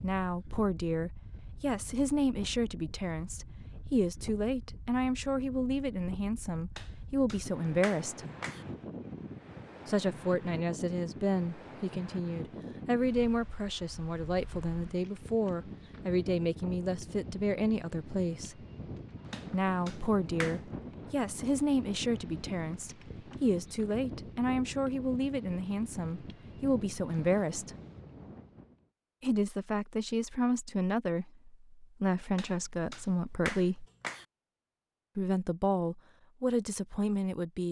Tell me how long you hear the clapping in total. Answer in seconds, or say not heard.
5 s.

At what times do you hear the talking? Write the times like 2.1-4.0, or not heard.
0.0-8.2, 9.8-18.6, 19.5-27.7, 29.2-33.9, 35.1-37.6.